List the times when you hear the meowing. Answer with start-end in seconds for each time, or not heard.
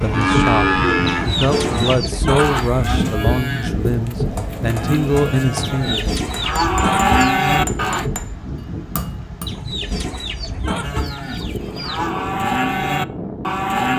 not heard.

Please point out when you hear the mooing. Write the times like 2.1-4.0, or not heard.
0.0-8.1, 10.8-13.9.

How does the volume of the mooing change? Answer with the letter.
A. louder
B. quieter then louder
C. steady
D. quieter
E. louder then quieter
B.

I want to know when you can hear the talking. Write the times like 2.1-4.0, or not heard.
0.0-6.1.